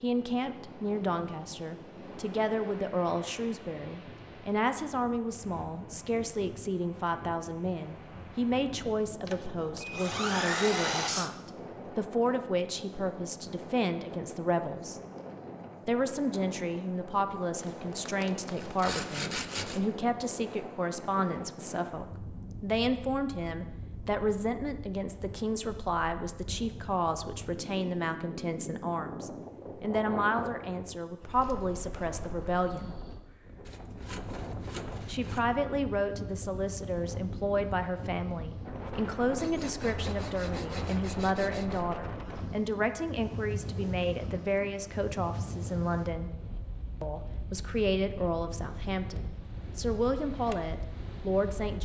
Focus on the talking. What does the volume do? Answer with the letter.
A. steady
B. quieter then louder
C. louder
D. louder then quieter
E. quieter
A.